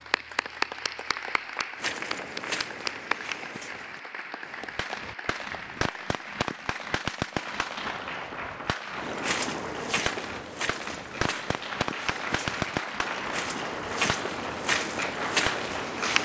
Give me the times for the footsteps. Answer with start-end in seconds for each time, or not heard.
1.8-4.8, 8.9-16.2.